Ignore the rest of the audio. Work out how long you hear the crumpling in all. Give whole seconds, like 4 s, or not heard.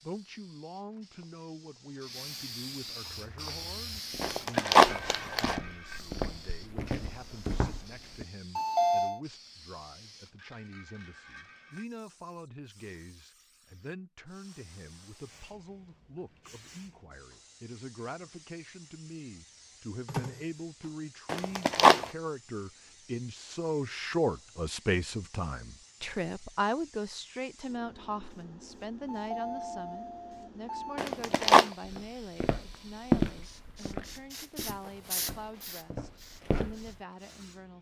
3 s.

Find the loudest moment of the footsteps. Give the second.
33 s.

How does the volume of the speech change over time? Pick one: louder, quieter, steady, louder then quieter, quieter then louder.
louder then quieter.